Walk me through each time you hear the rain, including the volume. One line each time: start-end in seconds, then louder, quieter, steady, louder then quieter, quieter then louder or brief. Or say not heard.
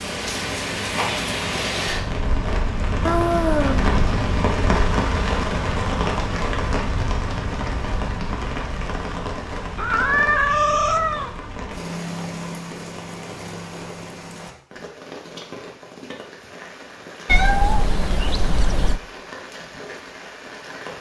0.0-20.9 quieter.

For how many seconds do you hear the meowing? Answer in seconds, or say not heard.
4 s.